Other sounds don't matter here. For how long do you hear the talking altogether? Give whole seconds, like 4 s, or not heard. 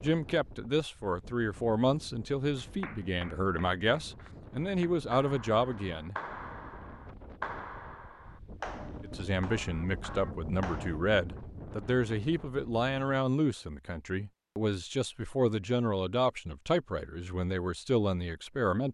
16 s.